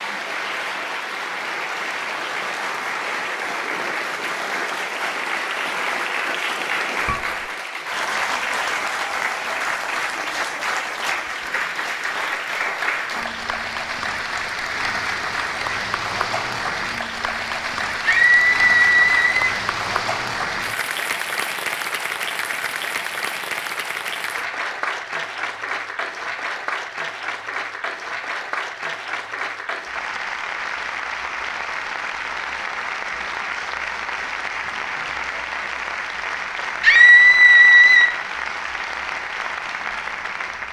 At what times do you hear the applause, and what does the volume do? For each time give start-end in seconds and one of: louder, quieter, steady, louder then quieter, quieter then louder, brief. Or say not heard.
0.0-40.6 steady.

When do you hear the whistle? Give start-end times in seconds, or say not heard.
not heard.